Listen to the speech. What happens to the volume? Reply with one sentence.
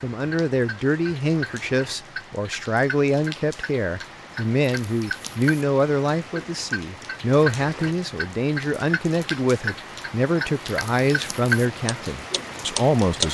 The loudness of the speech stays about the same.